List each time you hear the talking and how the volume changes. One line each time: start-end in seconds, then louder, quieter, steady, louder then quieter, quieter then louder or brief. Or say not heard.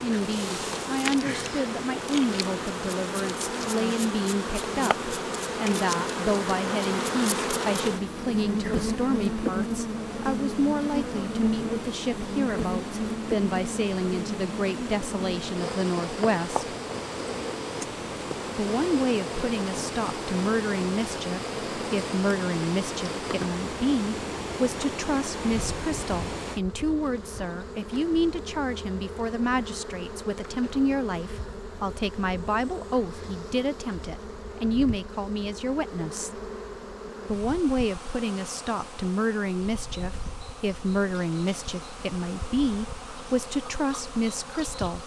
0.0-16.8 steady
18.6-36.3 steady
37.2-45.0 steady.